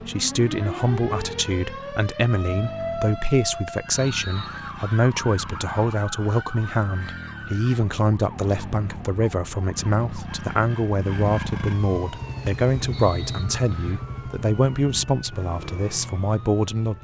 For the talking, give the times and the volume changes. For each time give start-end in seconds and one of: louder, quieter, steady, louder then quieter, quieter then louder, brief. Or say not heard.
0.1-16.9 steady.